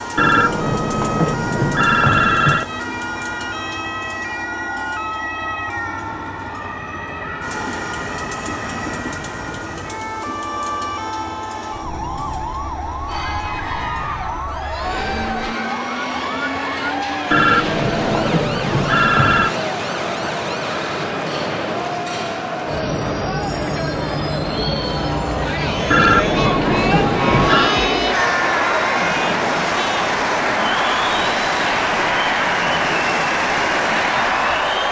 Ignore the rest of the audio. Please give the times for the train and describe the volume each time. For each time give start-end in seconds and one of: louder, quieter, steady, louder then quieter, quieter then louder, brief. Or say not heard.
0.0-34.8 louder.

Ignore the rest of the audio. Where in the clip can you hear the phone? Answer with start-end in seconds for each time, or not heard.
0.1-2.7, 17.3-19.6, 25.9-27.8.